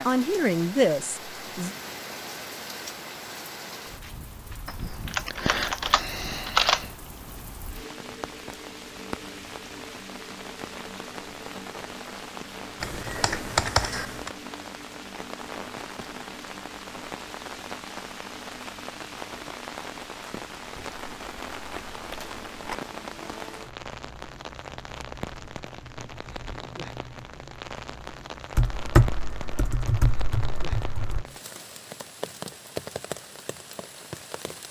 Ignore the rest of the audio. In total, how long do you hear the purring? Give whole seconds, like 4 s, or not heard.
not heard.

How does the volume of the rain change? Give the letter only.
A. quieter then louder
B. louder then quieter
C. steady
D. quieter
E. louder
C.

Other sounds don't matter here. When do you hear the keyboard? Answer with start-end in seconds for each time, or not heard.
4.7-6.9, 12.8-14.3, 20.8-22.8, 28.5-31.2.